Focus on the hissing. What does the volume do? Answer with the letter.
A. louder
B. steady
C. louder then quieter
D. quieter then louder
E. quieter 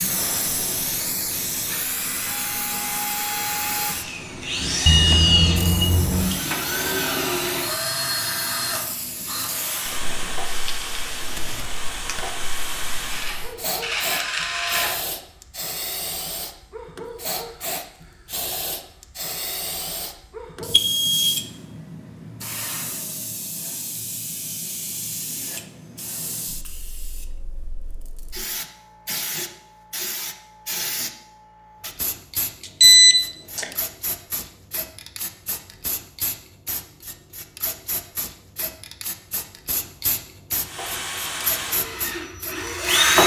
B.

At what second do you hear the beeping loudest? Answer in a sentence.
The volume of the beeping peaks at 33 seconds.